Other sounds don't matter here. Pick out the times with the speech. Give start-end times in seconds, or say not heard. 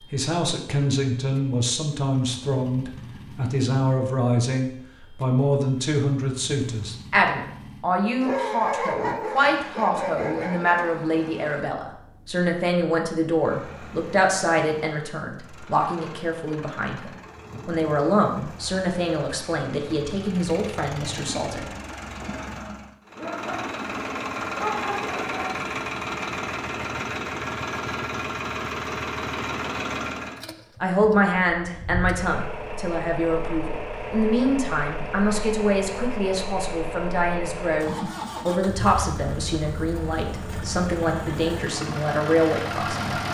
0.1-21.7, 30.8-43.2.